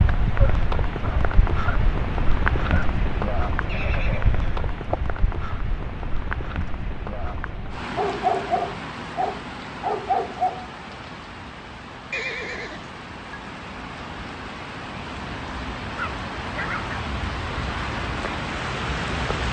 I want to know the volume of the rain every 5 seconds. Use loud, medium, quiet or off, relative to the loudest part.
loud, medium, medium, loud.